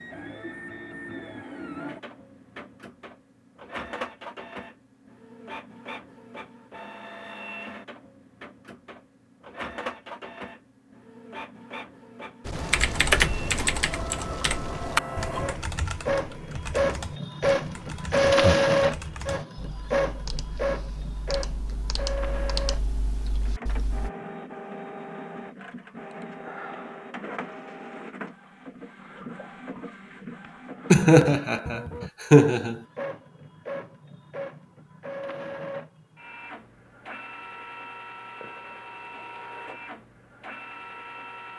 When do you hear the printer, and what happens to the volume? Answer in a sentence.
The printer can be heard from 0.0 to 41.5 s, getting louder then quieter.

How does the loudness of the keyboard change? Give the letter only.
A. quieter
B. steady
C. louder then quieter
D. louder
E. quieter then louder
E.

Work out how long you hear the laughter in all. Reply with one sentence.
The laughter can be heard for 2 seconds in total.